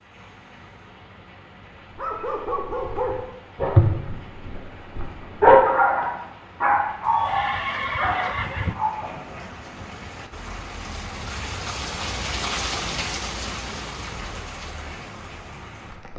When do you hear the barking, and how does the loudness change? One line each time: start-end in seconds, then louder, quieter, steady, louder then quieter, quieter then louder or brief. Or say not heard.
1.9-9.4 louder then quieter.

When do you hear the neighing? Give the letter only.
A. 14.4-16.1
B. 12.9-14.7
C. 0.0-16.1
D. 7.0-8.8
D.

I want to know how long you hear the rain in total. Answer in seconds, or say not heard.
16 s.